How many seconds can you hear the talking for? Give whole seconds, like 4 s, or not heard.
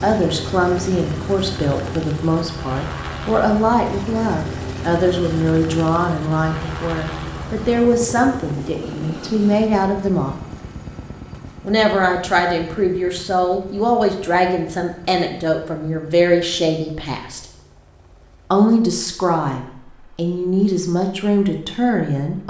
20 s.